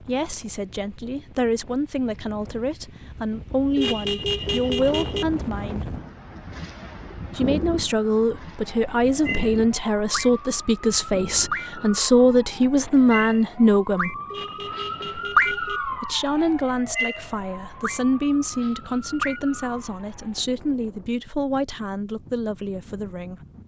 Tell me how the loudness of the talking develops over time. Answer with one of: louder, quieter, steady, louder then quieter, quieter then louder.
louder then quieter.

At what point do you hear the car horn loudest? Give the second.
4 s.